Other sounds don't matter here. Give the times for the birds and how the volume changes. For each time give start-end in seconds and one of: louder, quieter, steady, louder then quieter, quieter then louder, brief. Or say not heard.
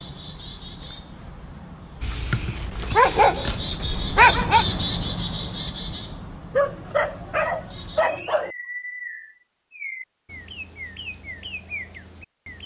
0.0-12.6 louder then quieter.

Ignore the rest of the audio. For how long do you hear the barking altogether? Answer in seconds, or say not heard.
5 s.